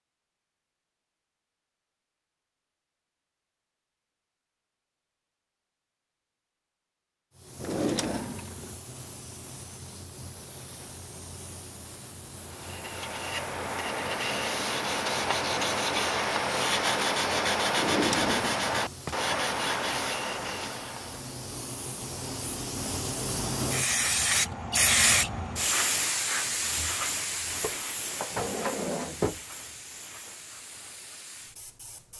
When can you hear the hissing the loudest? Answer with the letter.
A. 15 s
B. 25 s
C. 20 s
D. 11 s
B.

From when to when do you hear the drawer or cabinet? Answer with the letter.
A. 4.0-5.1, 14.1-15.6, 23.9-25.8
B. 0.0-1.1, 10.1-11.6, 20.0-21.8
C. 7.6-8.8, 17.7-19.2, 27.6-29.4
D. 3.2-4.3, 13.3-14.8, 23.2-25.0
C.